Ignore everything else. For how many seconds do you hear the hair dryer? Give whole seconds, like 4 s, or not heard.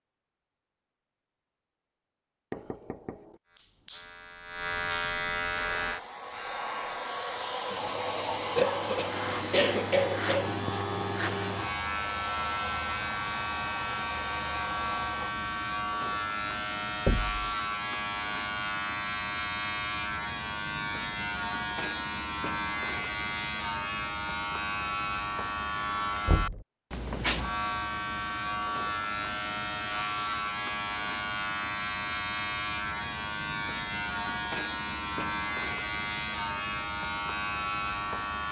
10 s.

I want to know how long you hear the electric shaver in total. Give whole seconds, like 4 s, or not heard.
35 s.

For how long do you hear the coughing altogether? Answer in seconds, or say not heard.
2 s.